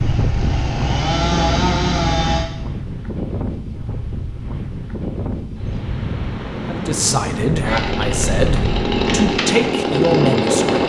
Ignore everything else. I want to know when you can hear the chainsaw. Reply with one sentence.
The chainsaw can be heard from 0.0 to 2.5 s and from 7.6 to 10.8 s.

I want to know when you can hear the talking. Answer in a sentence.
You can hear the talking from 6.7 to 10.8 s.